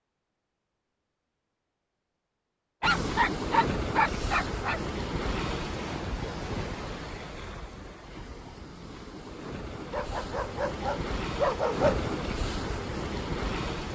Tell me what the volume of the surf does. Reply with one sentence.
The loudness of the surf goes down, then up.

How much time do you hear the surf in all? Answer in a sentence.
The surf can be heard for 11 seconds in total.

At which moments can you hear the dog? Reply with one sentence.
The dog can be heard from 2.8 to 4.8 s and from 9.9 to 12.1 s.